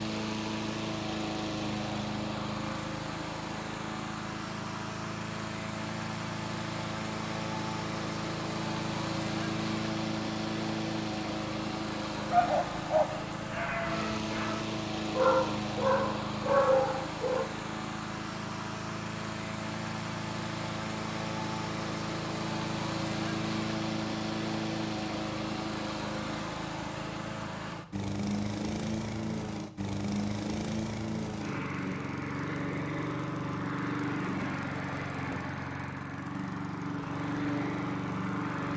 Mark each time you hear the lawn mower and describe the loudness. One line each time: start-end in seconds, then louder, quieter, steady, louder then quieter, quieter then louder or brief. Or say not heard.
0.0-38.7 steady.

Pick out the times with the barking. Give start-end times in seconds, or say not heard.
12.3-17.4.